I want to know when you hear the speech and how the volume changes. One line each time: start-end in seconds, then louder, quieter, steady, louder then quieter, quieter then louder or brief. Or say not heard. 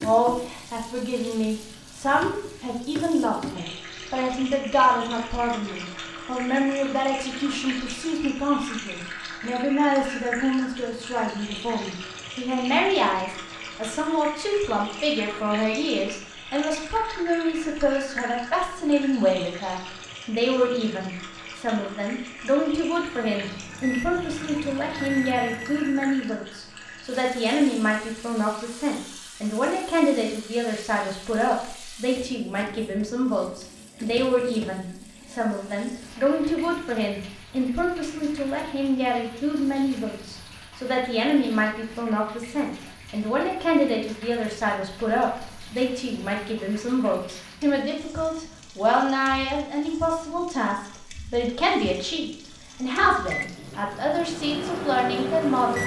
0.0-55.8 steady.